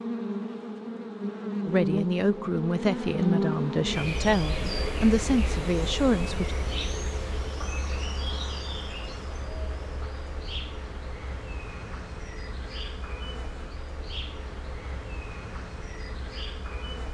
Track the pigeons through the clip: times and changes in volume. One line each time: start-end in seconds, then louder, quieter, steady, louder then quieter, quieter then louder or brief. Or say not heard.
not heard.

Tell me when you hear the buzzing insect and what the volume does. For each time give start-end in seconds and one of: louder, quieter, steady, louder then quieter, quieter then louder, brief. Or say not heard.
0.0-17.0 quieter.